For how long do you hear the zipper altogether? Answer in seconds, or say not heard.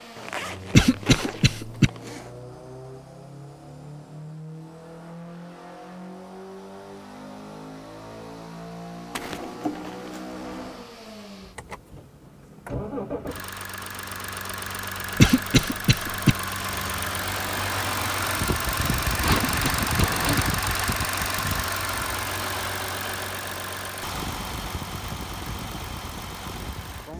5 s.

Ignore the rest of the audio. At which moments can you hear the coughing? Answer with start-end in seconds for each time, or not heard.
0.8-1.9, 15.2-16.4, 19.3-20.4.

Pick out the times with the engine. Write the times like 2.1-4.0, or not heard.
0.0-27.1.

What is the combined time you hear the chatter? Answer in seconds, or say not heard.
not heard.